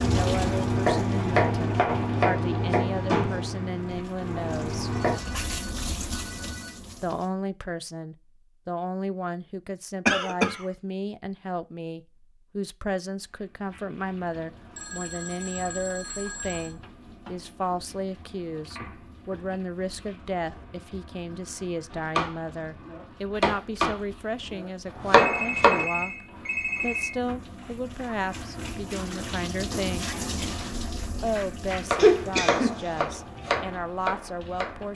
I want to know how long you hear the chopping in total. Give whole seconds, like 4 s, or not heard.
12 s.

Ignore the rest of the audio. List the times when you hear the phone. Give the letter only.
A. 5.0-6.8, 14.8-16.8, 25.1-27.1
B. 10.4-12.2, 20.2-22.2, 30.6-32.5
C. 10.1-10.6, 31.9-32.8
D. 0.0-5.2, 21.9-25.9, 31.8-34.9
A.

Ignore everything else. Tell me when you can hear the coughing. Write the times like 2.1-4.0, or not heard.
10.1-10.6, 31.9-32.8.